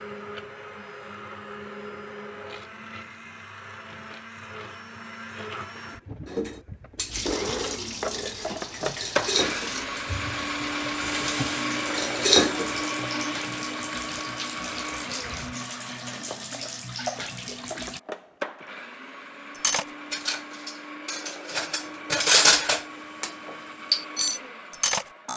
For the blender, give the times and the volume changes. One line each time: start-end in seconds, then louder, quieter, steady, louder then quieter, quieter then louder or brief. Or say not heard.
0.0-25.3 louder then quieter.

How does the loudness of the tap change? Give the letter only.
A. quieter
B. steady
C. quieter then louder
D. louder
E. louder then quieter
B.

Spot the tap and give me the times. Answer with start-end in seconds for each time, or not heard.
7.1-18.0.